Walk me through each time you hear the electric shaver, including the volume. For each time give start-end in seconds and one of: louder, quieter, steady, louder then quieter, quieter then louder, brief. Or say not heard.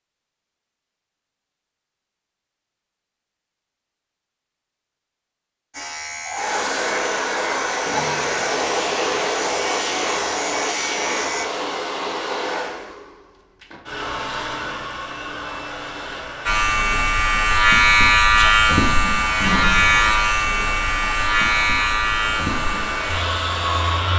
5.7-11.4 steady
16.4-24.1 quieter.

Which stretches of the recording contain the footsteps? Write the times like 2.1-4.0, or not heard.
not heard.